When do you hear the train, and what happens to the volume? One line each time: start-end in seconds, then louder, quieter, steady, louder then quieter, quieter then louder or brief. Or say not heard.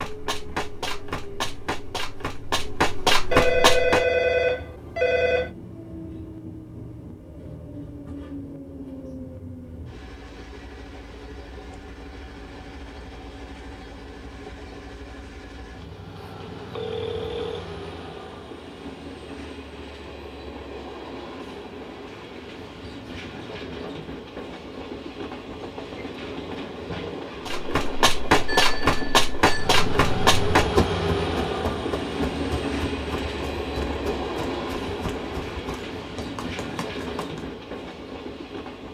0.0-38.8 louder.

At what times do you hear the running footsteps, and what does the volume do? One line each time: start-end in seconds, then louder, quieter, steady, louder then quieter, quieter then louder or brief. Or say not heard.
0.0-4.0 louder
27.4-37.5 quieter.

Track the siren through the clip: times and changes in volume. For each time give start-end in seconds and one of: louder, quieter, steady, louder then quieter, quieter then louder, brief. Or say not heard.
not heard.